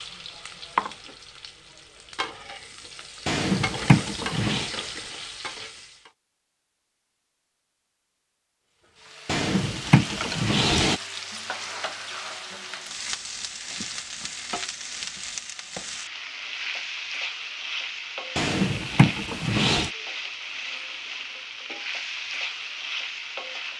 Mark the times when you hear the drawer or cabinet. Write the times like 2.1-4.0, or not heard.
3.2-4.7, 9.2-11.0, 18.4-19.9.